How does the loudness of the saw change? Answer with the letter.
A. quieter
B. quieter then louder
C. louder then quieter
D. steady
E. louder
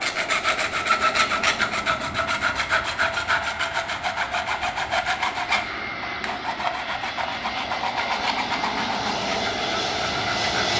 A.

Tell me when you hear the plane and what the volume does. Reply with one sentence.
The plane can be heard from 0.0 to 10.7 s, getting louder.